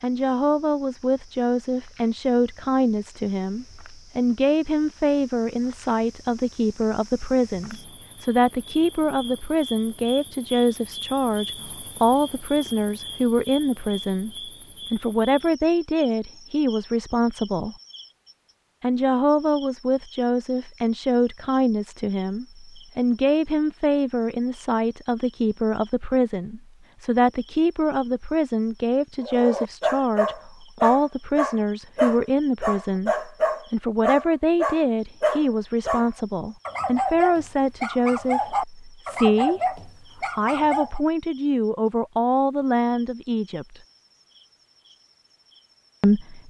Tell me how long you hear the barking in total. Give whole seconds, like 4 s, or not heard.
12 s.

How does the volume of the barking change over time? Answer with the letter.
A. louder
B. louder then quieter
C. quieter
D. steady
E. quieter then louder
D.